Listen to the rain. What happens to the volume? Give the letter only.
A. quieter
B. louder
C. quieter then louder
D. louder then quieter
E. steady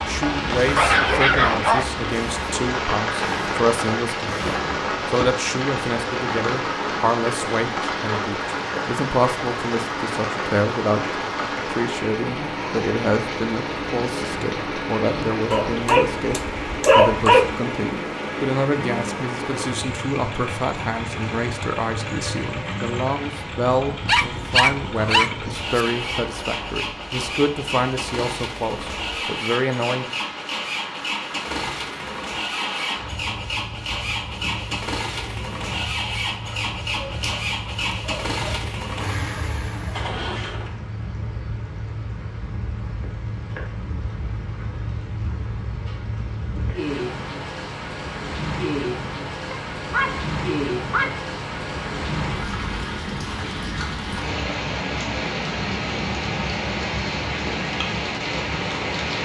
C.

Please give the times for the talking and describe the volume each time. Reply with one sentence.
You can hear the talking from 0.0 to 30.1 s, at a steady volume.